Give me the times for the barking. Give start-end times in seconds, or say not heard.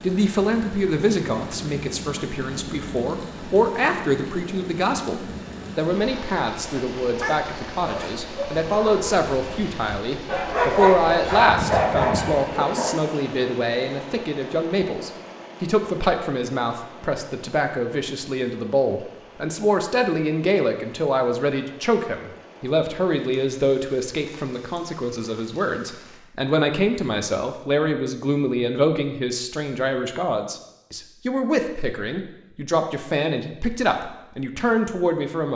7.2-13.0.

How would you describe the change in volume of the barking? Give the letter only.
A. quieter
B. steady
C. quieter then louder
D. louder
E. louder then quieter
D.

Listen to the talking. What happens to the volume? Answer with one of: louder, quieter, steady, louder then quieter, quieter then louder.
steady.